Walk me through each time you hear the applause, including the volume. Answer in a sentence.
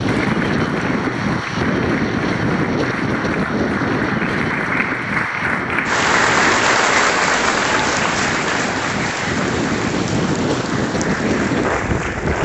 You can hear the applause from 0.0 to 12.4 s, getting louder then quieter.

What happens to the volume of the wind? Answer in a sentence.
The volume of the wind goes down, then up.